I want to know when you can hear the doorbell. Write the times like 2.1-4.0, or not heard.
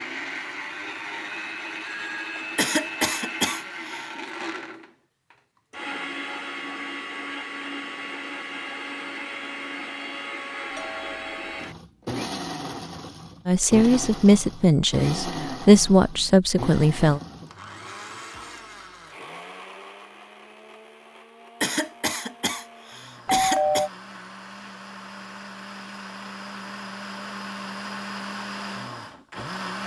1.9-2.5, 10.7-11.7, 23.2-23.9.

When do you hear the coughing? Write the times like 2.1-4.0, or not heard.
2.5-4.1, 21.6-23.9.